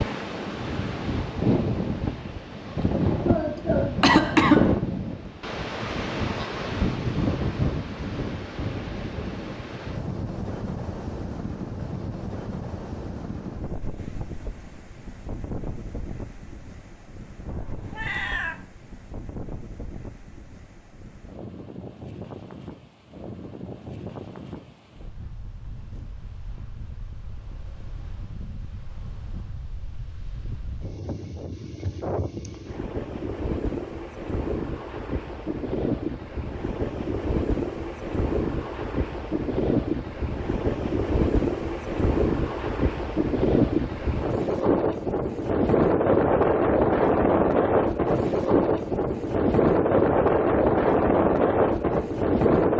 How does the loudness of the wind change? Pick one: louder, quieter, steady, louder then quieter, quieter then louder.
quieter then louder.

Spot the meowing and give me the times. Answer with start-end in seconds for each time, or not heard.
17.4-18.6.